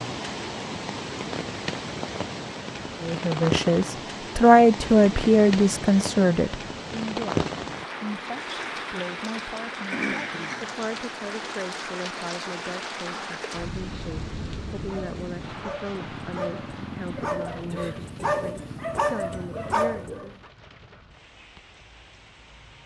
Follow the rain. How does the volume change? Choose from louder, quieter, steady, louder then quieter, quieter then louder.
quieter.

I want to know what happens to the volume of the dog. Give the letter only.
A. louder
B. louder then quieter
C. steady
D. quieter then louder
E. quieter
A.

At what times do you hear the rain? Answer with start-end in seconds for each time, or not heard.
0.0-22.8.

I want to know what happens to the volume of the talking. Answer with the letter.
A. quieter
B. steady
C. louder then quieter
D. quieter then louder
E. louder
A.